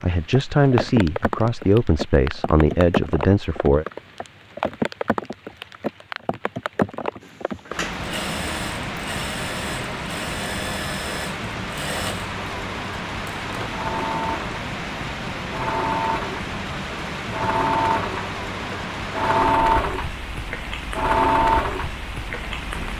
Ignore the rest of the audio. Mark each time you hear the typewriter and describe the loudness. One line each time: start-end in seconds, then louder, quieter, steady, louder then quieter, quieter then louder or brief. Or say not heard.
not heard.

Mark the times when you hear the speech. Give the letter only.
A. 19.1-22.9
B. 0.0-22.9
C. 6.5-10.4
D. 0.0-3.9
D.